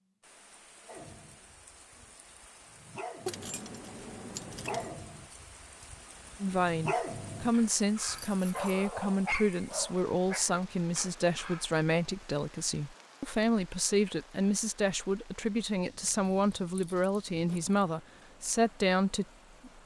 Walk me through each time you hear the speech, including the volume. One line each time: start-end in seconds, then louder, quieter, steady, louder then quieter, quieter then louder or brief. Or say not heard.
6.4-19.7 steady.